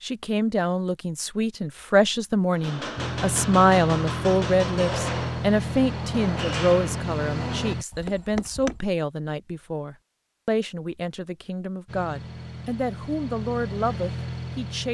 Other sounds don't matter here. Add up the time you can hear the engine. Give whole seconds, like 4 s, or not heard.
8 s.